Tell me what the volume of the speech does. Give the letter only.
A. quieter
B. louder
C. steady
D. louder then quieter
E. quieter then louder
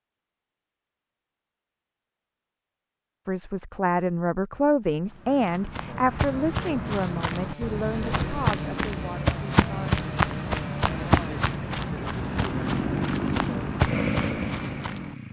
A.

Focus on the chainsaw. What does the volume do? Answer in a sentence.
The volume of the chainsaw goes up.